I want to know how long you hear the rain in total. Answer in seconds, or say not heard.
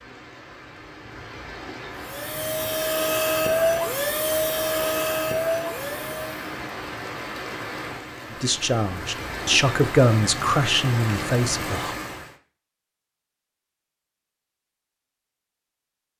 12 s.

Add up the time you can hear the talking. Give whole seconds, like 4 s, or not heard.
4 s.